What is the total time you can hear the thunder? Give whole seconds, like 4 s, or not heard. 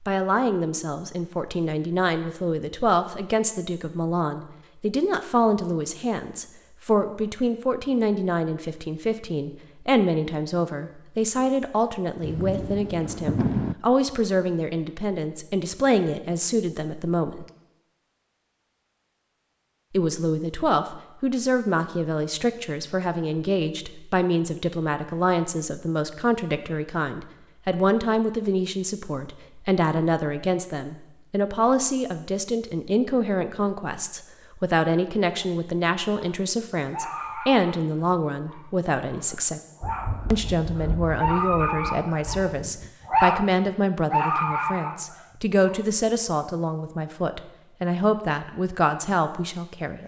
5 s.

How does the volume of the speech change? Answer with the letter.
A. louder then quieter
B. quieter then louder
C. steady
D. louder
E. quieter
C.